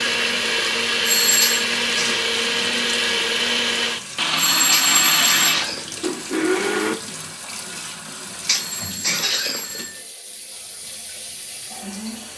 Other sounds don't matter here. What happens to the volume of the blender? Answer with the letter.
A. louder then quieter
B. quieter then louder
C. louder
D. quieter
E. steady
E.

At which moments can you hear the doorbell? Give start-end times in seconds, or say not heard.
1.1-1.6, 4.3-5.5, 8.5-10.0.